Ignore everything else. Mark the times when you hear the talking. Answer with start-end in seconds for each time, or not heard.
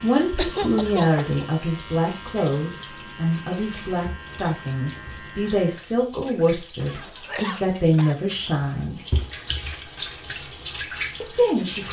0.0-9.0, 11.2-11.8.